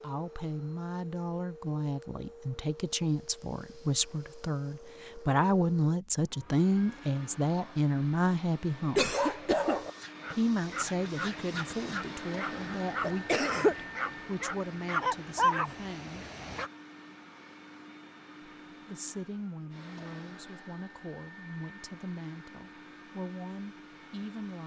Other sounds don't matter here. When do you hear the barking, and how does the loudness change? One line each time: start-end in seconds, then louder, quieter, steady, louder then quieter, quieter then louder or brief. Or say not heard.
9.0-16.7 quieter then louder.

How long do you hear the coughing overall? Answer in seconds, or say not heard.
2 s.